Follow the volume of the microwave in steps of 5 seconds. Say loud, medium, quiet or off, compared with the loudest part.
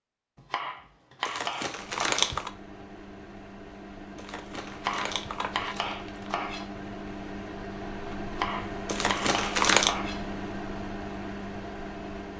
medium, loud, loud.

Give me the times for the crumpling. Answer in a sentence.
You can hear the crumpling from 1.2 to 2.5 s, from 4.2 to 6.3 s and from 8.8 to 9.9 s.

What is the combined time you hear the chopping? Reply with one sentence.
The chopping can be heard for 6 seconds in total.